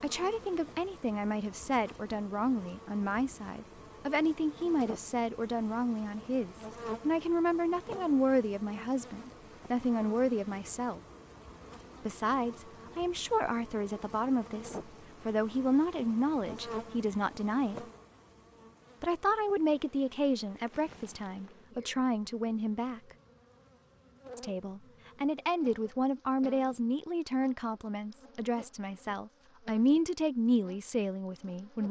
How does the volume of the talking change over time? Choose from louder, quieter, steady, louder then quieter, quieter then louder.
steady.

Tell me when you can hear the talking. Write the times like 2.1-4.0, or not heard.
0.0-11.0, 12.1-17.9, 19.0-23.0, 24.4-31.8.